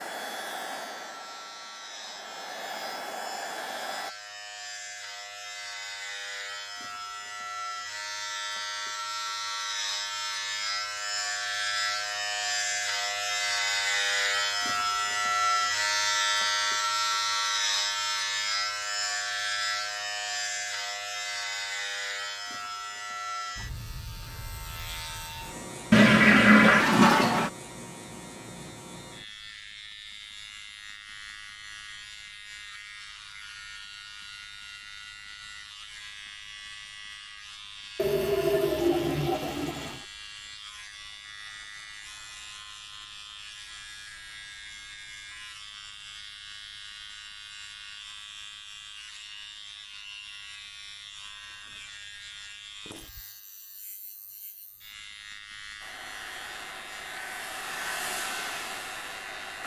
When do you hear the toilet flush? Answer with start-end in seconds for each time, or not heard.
25.9-27.5, 38.0-40.0.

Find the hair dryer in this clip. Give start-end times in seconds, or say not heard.
0.0-4.2, 55.8-59.6.